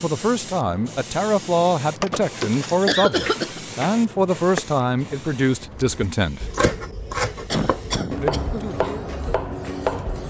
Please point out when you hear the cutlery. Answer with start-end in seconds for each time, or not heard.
not heard.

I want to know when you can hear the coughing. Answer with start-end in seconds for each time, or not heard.
2.0-3.6, 7.5-8.7.